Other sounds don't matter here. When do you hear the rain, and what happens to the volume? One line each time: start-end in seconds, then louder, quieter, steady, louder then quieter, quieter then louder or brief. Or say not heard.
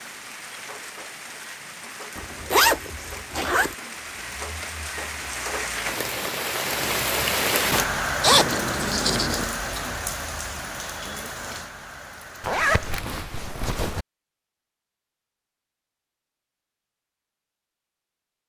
0.0-13.1 louder then quieter.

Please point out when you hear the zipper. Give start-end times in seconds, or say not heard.
2.1-3.8, 8.2-9.4, 12.4-14.1.